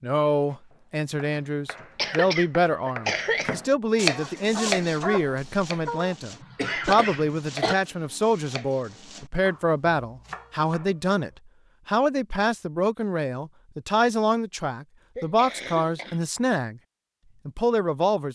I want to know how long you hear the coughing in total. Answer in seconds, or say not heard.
4 s.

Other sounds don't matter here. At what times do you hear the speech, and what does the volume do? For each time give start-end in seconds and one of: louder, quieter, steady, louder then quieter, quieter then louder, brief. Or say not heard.
0.0-16.8 steady
17.4-18.3 brief.